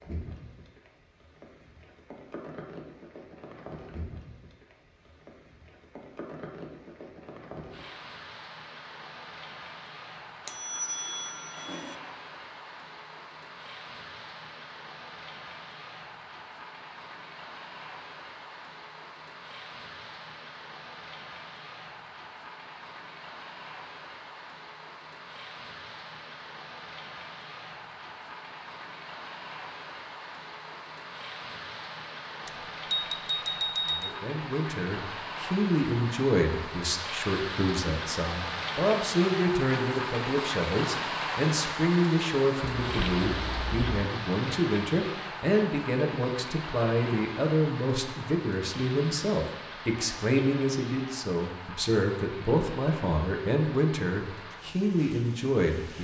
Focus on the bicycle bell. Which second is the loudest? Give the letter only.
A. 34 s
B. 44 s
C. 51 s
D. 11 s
A.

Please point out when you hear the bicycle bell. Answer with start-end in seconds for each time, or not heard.
10.4-11.9, 32.5-34.1, 42.8-44.0.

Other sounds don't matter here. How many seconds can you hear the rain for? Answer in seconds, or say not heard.
56 s.